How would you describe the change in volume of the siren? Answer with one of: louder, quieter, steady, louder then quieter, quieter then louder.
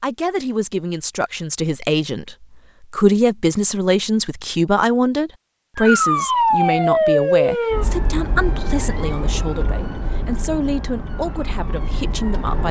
quieter.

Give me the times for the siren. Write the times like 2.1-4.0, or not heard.
5.8-12.6.